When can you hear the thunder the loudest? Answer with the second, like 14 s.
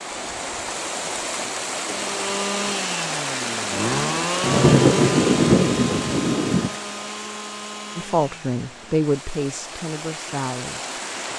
5 s.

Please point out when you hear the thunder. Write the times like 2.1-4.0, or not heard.
4.4-6.8.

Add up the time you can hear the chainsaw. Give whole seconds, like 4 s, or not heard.
7 s.